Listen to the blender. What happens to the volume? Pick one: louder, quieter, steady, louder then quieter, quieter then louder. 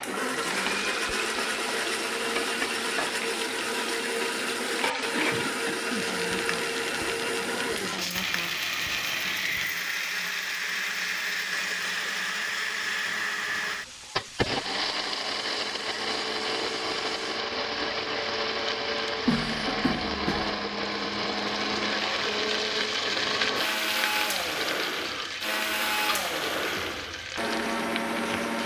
steady.